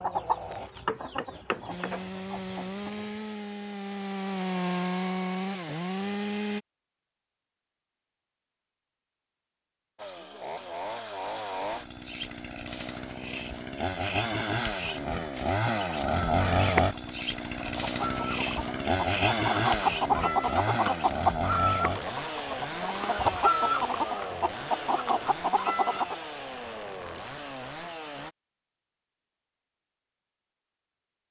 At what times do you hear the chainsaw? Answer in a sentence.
The chainsaw can be heard from 1.6 to 6.6 s and from 9.9 to 28.4 s.